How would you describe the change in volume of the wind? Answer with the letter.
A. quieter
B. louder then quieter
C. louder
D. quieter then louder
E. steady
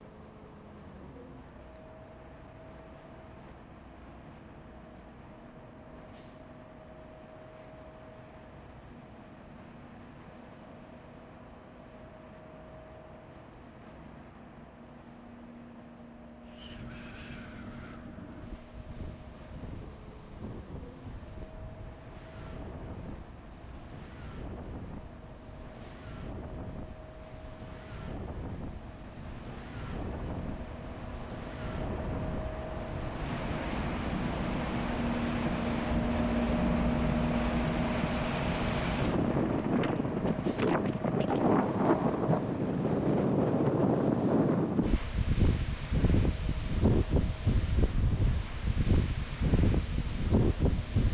C.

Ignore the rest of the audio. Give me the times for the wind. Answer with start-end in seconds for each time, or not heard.
16.4-51.0.